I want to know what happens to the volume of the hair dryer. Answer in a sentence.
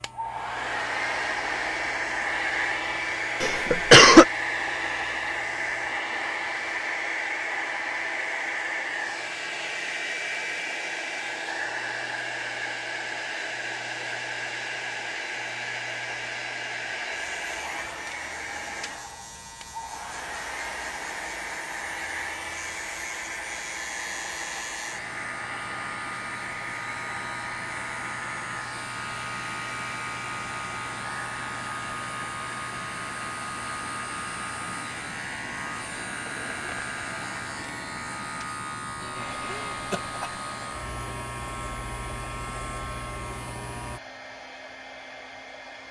The loudness of the hair dryer goes down.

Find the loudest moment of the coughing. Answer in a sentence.
The loudest moment of the coughing is at 4 seconds.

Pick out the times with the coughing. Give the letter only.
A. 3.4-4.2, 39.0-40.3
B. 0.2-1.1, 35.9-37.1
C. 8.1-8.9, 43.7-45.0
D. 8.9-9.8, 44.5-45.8
A.